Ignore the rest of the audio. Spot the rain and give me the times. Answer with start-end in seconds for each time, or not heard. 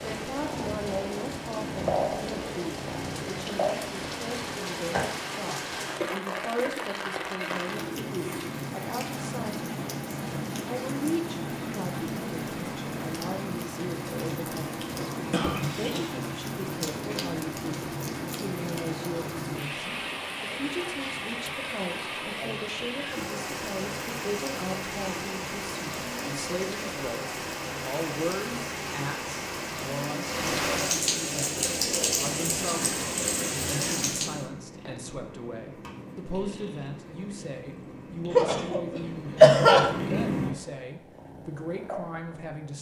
0.0-34.5.